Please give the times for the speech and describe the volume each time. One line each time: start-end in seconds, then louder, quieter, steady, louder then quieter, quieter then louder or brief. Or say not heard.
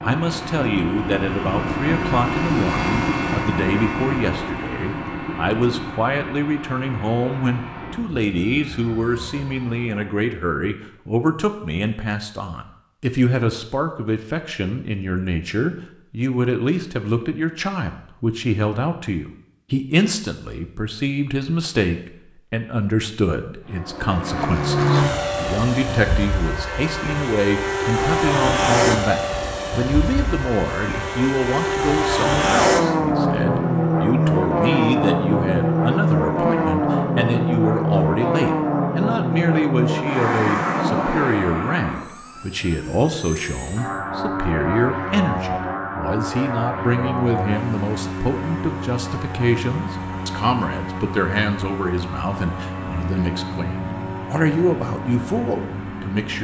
0.0-56.3 steady.